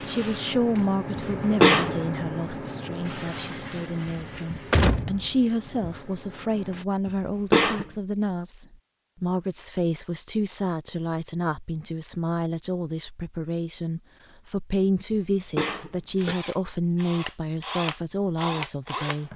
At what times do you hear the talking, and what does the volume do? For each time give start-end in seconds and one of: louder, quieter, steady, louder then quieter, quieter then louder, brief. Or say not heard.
0.0-19.3 steady.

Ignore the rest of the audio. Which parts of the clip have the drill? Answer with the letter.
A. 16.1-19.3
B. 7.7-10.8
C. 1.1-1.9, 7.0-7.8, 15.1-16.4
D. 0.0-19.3
A.